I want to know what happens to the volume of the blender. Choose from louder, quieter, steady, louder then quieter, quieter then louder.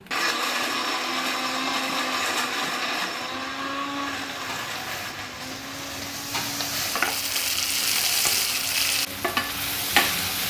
quieter.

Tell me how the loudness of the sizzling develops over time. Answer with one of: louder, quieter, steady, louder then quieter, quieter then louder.
louder.